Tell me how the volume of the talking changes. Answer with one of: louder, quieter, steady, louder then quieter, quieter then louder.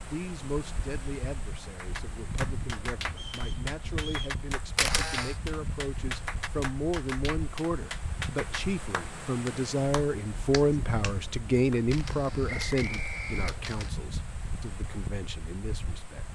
louder then quieter.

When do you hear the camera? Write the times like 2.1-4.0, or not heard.
4.8-5.3, 11.9-13.9.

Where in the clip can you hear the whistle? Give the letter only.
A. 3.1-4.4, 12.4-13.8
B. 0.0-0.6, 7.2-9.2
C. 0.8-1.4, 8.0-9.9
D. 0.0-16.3
A.